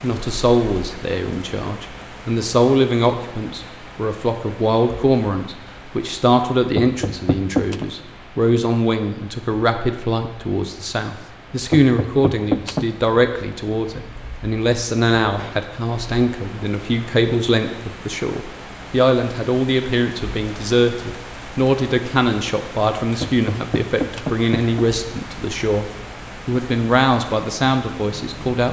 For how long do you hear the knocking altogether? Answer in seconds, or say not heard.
4 s.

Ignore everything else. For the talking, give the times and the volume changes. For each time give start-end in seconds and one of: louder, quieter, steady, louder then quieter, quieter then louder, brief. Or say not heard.
0.0-25.9 steady
26.4-28.6 brief.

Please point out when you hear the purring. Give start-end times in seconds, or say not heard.
not heard.